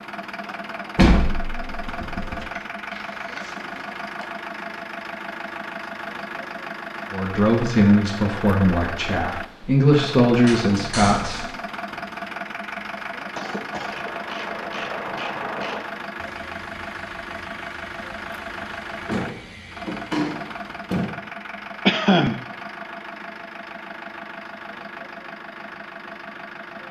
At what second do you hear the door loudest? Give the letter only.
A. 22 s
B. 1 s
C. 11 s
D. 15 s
B.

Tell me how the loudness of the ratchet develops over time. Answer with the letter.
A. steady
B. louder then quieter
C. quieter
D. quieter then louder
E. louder
C.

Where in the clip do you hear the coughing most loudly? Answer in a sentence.
The volume of the coughing peaks at 22 seconds.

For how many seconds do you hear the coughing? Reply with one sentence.
You can hear the coughing for 3 seconds altogether.